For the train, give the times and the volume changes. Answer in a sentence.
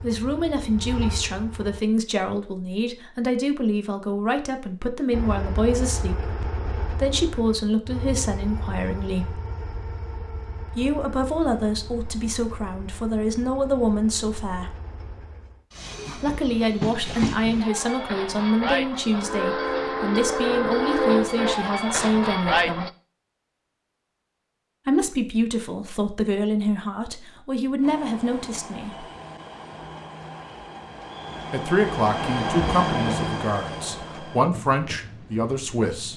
You can hear the train briefly from 0.0 to 1.8 s; from 5.1 to 22.9 s, getting quieter then louder; and from 27.8 to 36.1 s, getting louder then quieter.